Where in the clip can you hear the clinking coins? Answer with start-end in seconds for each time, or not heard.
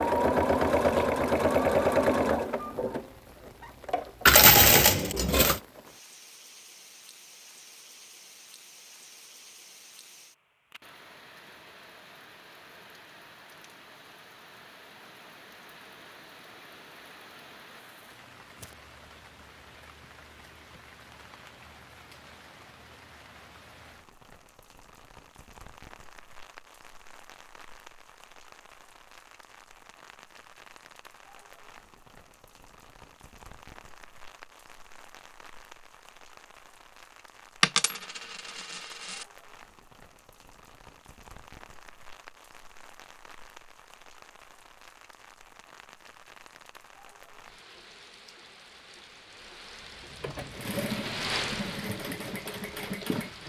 4.2-5.6, 37.6-39.2.